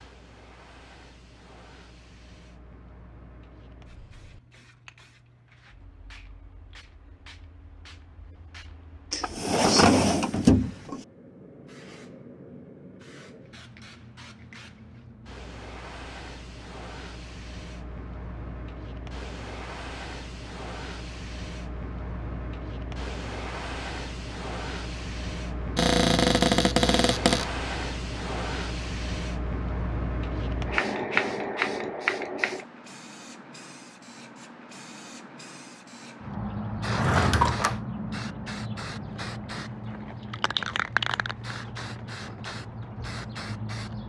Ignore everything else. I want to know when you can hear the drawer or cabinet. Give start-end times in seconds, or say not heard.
9.1-11.1, 25.8-27.4, 36.9-37.8.